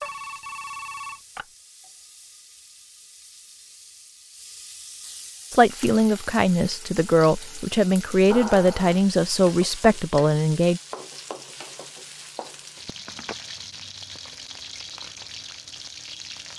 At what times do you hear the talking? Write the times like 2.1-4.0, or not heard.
5.5-10.8.